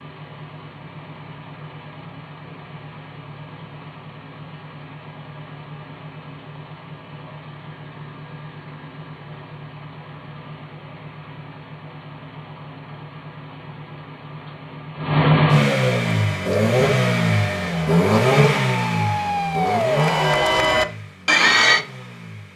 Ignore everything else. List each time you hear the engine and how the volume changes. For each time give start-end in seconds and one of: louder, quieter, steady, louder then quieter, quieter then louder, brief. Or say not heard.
0.0-22.5 louder.